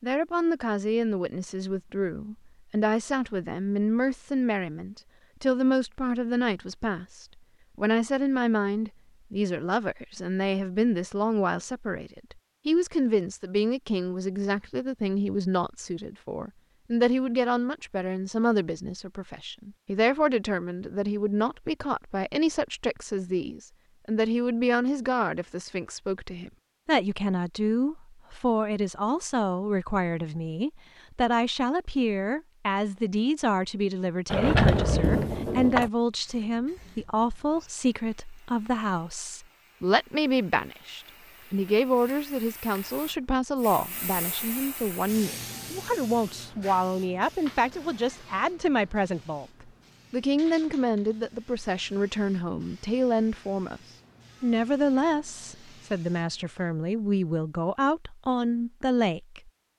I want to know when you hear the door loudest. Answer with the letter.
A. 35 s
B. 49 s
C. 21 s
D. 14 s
A.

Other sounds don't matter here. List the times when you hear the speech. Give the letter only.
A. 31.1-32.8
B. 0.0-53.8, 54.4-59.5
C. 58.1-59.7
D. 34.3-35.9
B.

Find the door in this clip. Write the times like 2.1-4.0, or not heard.
34.3-35.9.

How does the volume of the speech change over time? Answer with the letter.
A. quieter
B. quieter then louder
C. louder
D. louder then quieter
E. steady
E.